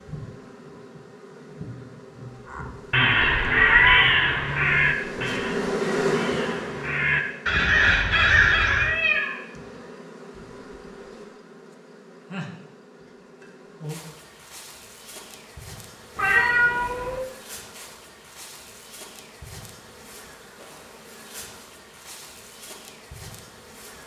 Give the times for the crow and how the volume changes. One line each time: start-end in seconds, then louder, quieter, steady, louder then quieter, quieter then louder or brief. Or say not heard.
2.5-8.9 quieter then louder.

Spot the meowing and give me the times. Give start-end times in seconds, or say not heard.
3.2-4.0, 8.7-9.3, 16.1-17.2.